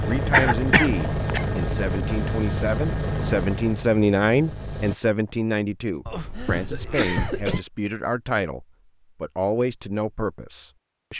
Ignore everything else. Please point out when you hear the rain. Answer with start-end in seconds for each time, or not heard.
not heard.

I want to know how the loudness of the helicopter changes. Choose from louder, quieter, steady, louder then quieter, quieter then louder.
quieter.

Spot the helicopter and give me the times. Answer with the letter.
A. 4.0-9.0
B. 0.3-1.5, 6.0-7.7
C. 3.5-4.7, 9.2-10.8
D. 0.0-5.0
D.